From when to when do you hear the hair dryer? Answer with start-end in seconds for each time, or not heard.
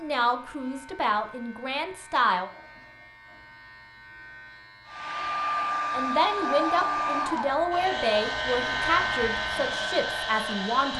4.8-10.9.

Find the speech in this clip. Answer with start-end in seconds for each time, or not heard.
0.0-2.5, 5.9-10.9.